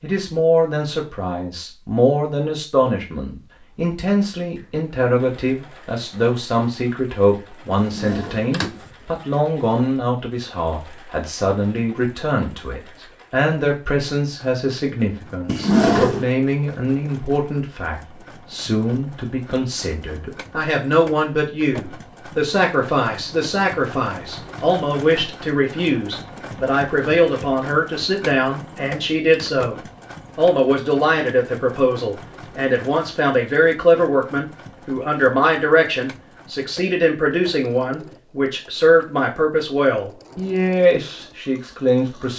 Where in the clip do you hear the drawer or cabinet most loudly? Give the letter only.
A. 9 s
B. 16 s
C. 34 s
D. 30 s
B.